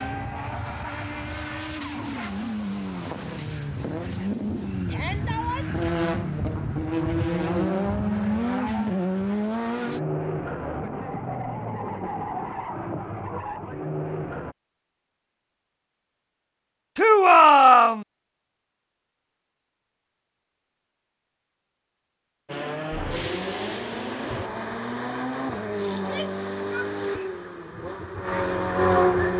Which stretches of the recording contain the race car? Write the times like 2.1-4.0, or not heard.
0.0-14.6, 22.4-29.3.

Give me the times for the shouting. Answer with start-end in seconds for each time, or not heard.
4.8-5.8, 16.9-18.1, 25.9-27.3.